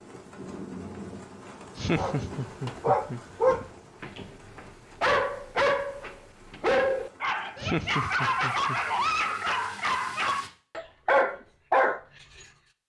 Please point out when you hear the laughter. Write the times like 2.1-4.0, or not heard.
1.8-3.6, 7.5-8.8.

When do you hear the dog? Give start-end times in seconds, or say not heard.
1.9-12.4.